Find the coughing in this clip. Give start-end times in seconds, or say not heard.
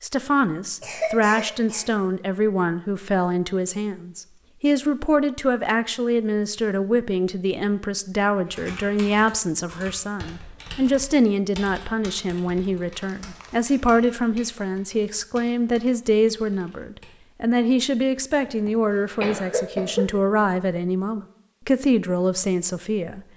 0.8-1.9, 13.1-13.8, 18.4-20.1.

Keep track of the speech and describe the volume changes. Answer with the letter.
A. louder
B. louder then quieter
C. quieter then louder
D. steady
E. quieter
D.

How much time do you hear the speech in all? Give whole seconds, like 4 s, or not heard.
23 s.